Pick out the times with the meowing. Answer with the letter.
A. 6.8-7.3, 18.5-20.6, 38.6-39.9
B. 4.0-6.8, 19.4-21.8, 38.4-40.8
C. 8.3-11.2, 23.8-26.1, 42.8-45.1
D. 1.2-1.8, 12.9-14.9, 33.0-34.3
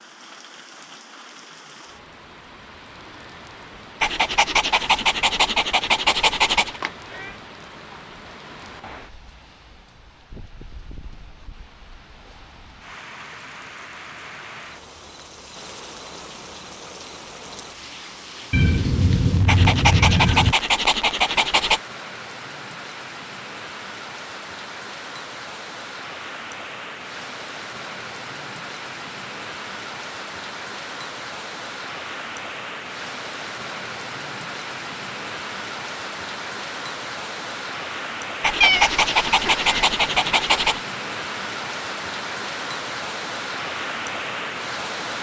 A.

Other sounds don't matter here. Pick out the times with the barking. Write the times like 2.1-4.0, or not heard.
4.0-6.8, 19.4-21.8, 38.4-40.8.